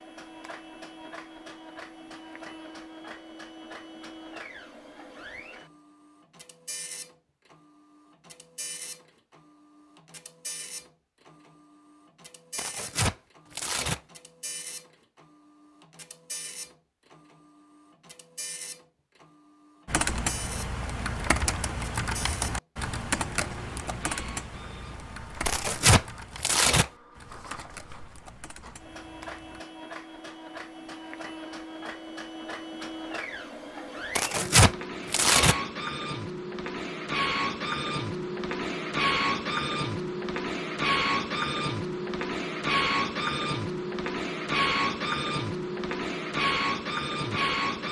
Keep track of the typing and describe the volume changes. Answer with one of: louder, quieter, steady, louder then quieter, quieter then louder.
quieter.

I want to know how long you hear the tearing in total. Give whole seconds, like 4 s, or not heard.
4 s.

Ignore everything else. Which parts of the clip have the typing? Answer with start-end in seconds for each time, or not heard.
19.9-29.6.